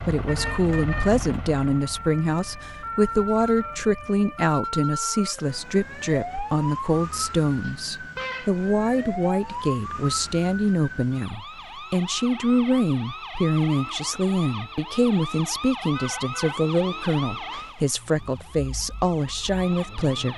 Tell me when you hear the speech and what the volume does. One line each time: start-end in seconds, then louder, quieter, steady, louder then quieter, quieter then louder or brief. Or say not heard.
0.0-20.3 steady.